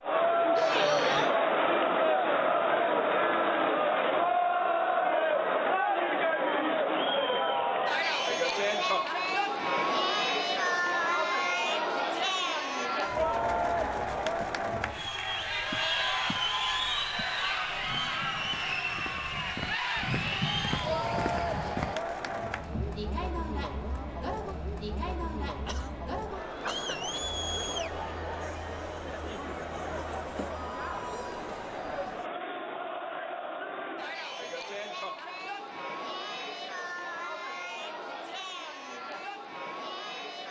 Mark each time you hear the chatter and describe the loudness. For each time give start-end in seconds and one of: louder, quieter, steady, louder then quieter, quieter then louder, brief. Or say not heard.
0.0-40.4 quieter.